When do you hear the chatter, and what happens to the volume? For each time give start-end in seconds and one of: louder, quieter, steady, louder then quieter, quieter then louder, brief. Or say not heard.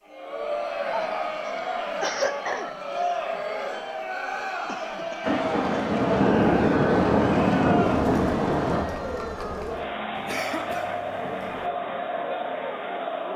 0.0-13.3 steady.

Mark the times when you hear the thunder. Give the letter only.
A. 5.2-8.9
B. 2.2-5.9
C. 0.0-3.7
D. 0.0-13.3
A.